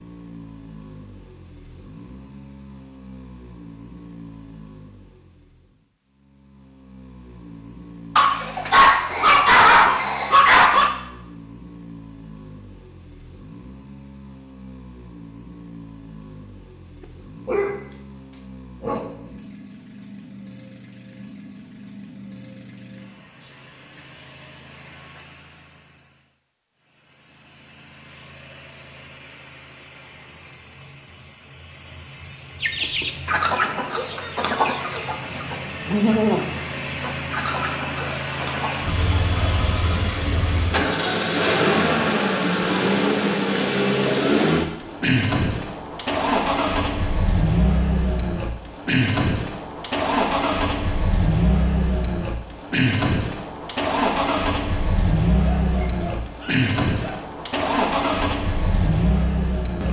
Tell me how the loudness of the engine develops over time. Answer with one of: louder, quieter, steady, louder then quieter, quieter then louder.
louder.